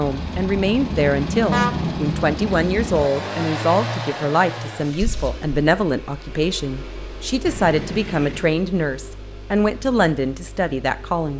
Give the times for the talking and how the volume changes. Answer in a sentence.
The talking can be heard from 0.0 to 11.3 s, at a steady volume.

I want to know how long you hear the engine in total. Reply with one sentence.
The engine can be heard for 11 seconds in total.